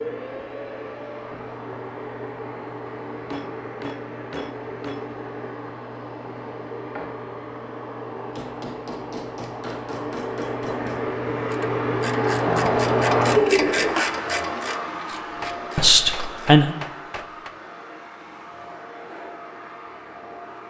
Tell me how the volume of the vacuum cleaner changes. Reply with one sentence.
The loudness of the vacuum cleaner goes up, then down.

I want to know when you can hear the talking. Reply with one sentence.
You can hear the talking from 15.8 to 16.8 s.